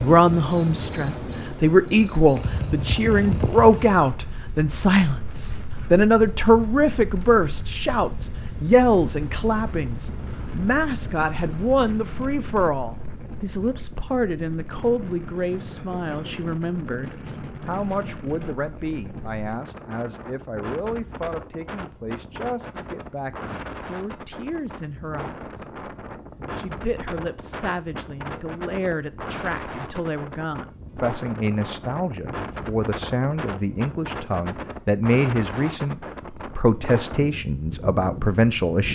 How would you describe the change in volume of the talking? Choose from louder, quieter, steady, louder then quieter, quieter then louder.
quieter then louder.